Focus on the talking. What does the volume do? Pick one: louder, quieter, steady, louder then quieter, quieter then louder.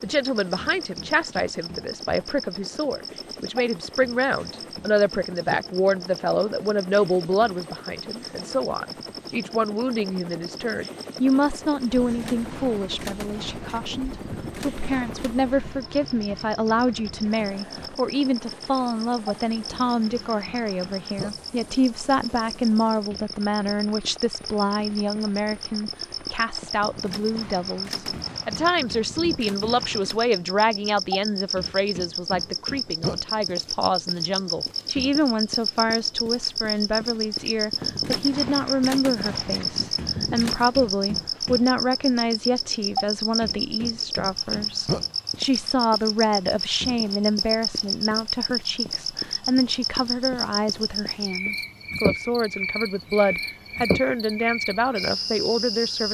steady.